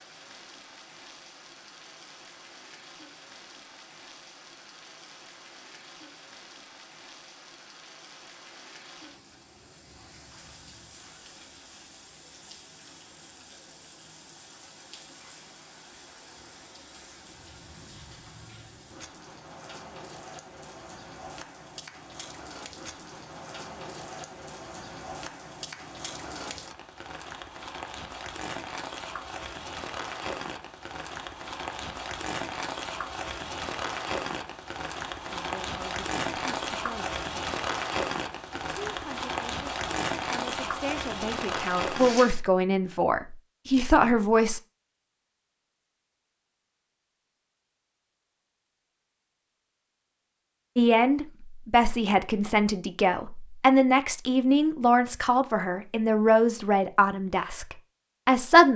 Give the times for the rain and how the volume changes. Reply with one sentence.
You can hear the rain from 0.0 to 42.4 s, getting louder.